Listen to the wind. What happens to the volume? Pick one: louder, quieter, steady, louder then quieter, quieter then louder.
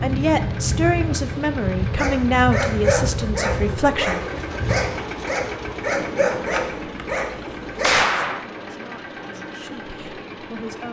quieter.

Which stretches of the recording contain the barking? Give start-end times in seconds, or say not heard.
1.9-8.1.